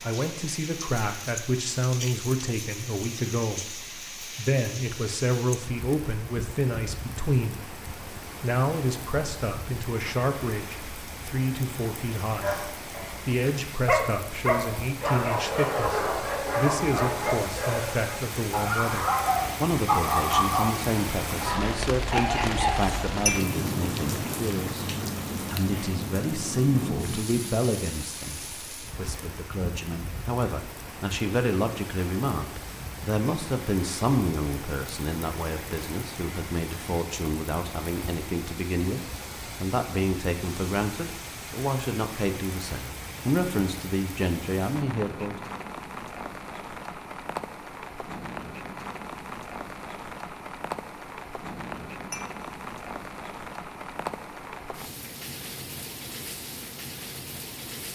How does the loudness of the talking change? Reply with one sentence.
The loudness of the talking stays about the same.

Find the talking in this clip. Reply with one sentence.
You can hear the talking from 0.0 to 24.9 s, from 25.4 to 39.0 s and from 39.6 to 45.5 s.